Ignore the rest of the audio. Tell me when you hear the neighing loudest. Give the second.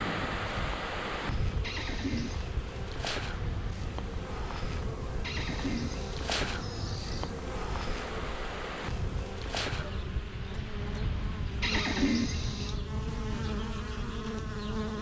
12 s.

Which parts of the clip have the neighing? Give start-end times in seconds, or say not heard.
1.6-2.5, 5.2-7.3, 11.6-12.8.